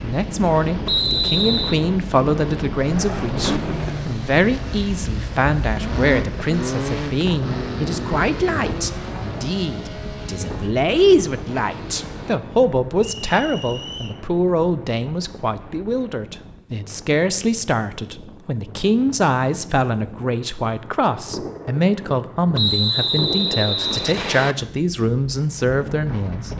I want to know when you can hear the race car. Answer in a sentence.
You can hear the race car from 2.8 to 12.4 s.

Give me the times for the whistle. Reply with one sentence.
You can hear the whistle from 0.8 to 1.8 s, from 13.0 to 14.2 s and from 22.6 to 24.6 s.